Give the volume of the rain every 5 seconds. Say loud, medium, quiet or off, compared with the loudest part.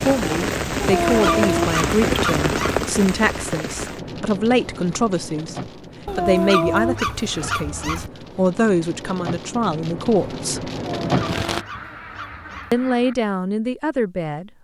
loud, medium, loud.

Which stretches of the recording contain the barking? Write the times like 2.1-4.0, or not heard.
0.8-2.8, 6.0-8.1, 11.0-12.8.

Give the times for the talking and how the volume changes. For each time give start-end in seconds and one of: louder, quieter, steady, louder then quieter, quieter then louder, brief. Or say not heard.
0.1-10.7 steady
12.7-14.5 brief.